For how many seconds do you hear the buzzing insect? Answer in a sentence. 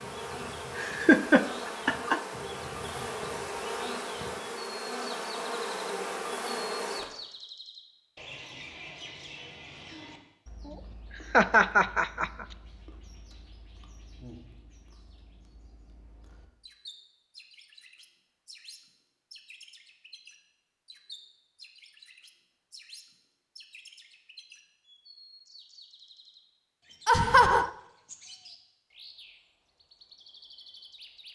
The buzzing insect can be heard for 7 seconds in total.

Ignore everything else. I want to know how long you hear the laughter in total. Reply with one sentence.
The laughter can be heard for 4 seconds in total.